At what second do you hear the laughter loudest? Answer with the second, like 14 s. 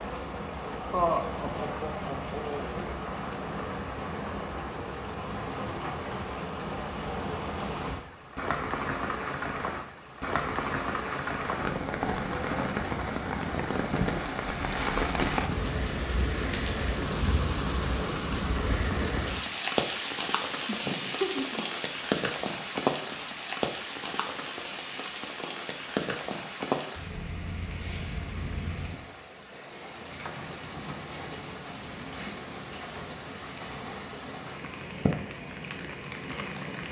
1 s.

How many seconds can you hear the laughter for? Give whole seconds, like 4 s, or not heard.
3 s.